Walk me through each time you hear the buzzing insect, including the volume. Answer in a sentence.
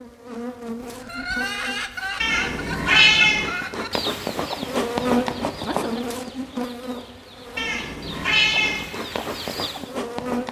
You can hear the buzzing insect from 0.0 to 10.4 s, getting louder then quieter.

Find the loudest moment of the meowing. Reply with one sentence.
The loudest moment of the meowing is at 3 seconds.